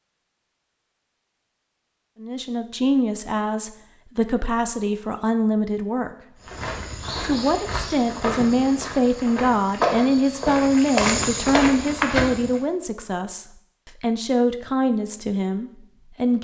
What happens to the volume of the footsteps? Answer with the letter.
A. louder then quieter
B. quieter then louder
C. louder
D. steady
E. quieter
C.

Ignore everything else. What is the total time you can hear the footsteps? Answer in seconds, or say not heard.
6 s.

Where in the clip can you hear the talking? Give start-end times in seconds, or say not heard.
2.2-6.4, 7.2-16.3.